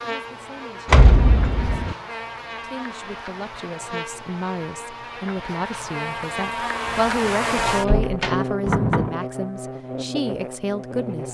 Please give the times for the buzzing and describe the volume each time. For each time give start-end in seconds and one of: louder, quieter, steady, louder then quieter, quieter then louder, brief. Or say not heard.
0.0-11.2 louder then quieter.